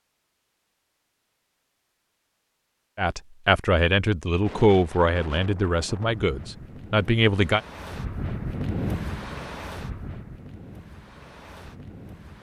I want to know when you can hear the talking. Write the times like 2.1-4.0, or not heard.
3.0-7.6.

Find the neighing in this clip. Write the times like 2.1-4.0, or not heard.
not heard.